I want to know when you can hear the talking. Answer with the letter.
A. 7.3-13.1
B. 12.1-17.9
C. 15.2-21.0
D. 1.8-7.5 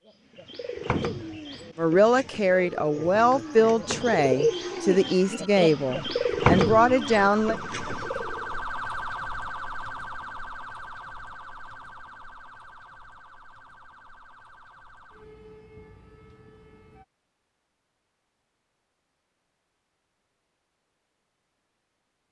D.